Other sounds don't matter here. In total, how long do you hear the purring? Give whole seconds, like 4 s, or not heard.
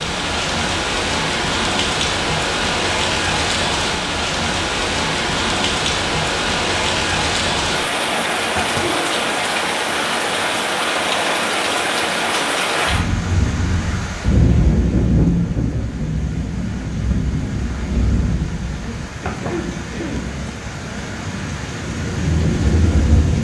not heard.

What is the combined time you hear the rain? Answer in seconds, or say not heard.
23 s.